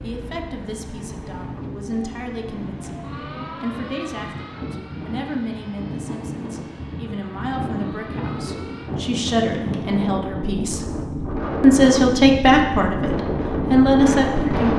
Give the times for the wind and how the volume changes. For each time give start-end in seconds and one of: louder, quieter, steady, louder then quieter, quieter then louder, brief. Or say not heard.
0.0-14.7 louder.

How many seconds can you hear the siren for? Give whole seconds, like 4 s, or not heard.
9 s.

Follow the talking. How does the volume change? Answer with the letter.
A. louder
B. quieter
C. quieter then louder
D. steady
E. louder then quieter
A.